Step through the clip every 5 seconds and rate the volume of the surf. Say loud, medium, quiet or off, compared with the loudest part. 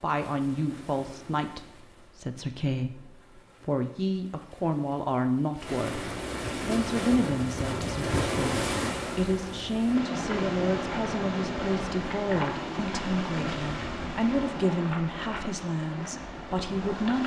quiet, loud, loud, medium.